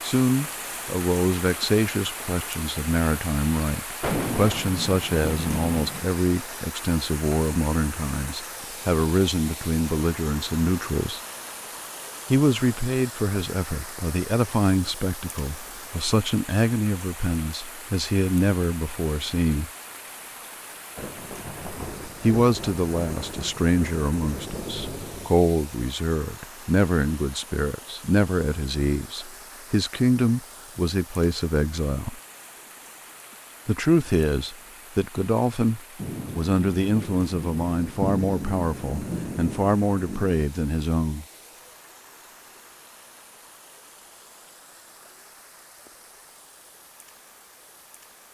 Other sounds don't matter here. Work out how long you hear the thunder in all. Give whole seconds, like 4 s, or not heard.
11 s.